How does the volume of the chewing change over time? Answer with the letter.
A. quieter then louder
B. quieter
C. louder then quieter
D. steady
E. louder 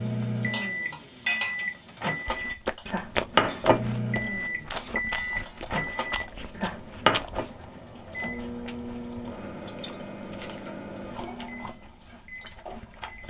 B.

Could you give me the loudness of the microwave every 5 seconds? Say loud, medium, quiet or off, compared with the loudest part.
loud, loud, quiet.